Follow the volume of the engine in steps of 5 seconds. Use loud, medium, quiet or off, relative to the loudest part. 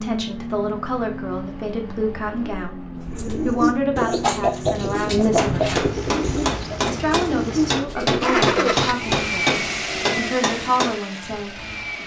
medium, loud, loud.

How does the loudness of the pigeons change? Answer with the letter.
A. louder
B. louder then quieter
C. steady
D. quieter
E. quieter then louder
E.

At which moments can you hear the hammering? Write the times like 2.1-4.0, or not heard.
5.3-10.9.